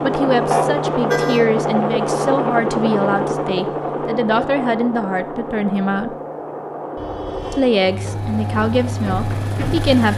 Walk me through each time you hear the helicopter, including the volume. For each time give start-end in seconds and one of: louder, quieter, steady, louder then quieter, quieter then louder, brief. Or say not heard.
0.0-10.1 quieter.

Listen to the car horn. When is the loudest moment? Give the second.
1 s.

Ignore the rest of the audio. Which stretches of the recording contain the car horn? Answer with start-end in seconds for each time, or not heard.
0.5-1.4, 7.0-7.7.